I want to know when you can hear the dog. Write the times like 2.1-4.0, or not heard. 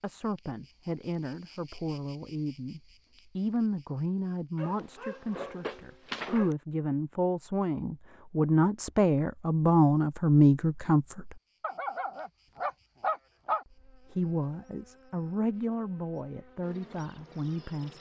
4.5-6.5, 11.6-13.7.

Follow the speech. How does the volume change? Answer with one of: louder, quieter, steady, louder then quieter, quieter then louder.
louder then quieter.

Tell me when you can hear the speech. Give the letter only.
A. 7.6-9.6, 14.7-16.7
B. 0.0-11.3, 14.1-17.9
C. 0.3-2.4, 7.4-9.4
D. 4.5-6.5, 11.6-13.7
B.